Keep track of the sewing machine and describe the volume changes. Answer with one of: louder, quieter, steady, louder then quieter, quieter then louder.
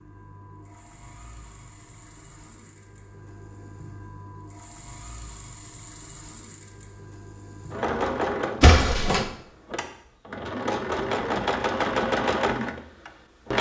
louder.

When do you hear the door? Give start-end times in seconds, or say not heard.
8.6-9.2.